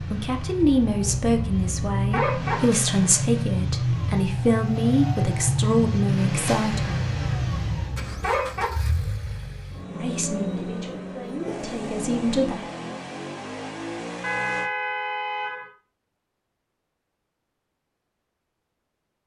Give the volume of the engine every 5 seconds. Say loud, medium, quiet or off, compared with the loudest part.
loud, loud, medium, off.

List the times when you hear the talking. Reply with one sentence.
You can hear the talking from 0.0 to 7.0 s and from 9.9 to 12.6 s.